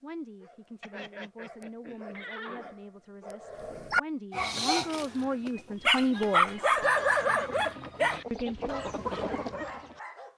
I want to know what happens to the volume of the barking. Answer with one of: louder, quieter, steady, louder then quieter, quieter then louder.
louder then quieter.